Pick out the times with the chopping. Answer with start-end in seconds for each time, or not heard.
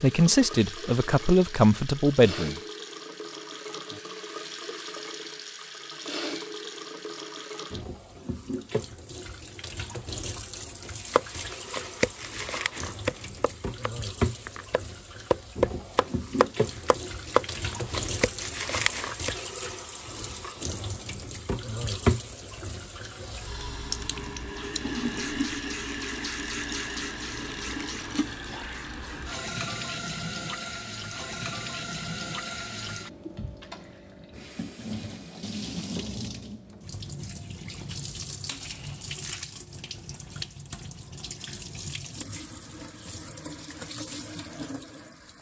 11.1-19.3.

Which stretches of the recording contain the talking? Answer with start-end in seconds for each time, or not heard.
0.0-2.5.